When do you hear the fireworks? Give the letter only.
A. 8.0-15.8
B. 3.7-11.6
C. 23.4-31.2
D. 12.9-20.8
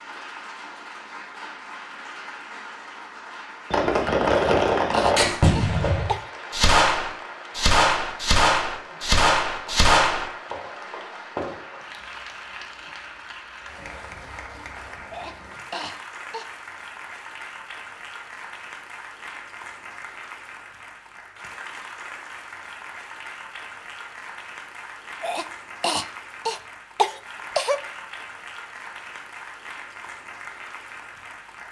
B.